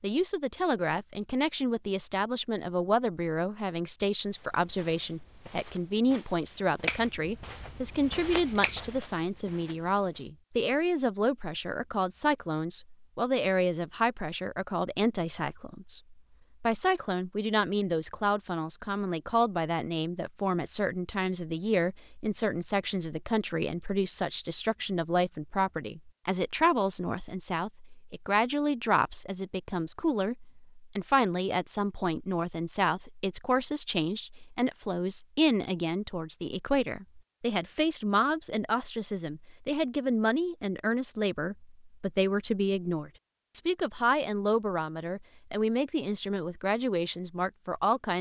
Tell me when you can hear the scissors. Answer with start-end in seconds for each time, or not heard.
6.8-8.9.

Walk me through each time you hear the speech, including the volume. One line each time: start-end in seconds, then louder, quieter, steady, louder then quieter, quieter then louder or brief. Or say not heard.
0.0-48.1 steady.